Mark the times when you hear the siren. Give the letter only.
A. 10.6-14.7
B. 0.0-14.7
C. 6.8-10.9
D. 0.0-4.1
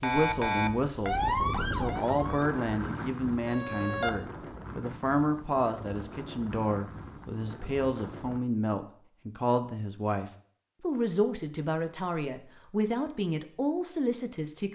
D.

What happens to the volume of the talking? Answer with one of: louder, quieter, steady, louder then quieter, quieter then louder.
steady.